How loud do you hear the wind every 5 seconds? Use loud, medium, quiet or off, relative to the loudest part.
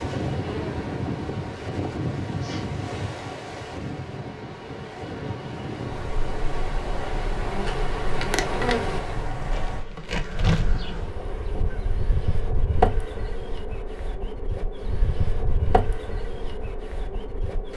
loud, loud, off, off.